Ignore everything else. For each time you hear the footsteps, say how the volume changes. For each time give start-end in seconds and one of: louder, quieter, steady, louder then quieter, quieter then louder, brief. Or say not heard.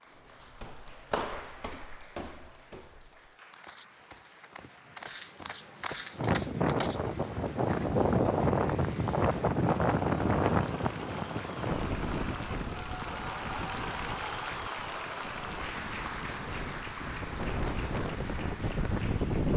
0.1-7.1 quieter then louder.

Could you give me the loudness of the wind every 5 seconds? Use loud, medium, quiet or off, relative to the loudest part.
off, loud, medium, medium.